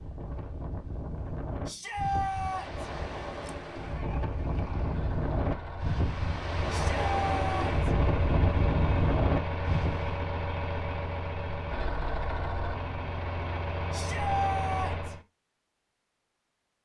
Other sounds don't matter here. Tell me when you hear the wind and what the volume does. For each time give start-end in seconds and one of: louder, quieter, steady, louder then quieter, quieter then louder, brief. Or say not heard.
0.0-10.2 louder.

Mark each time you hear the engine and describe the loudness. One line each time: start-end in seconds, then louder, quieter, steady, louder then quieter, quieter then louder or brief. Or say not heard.
2.5-15.2 louder.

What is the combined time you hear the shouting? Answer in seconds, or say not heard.
4 s.